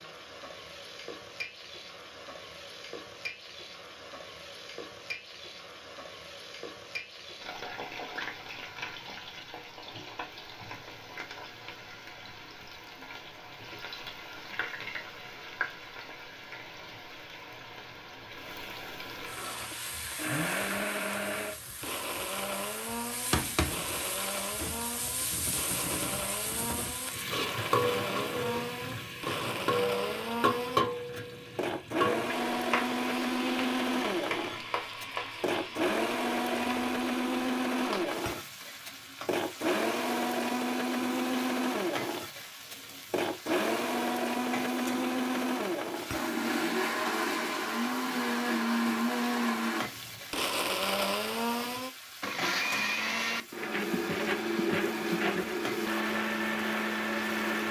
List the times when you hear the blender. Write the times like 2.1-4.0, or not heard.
19.1-57.6.